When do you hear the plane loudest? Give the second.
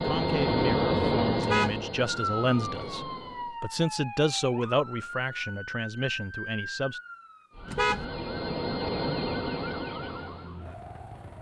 1 s.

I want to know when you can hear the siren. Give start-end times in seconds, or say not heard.
2.0-11.3.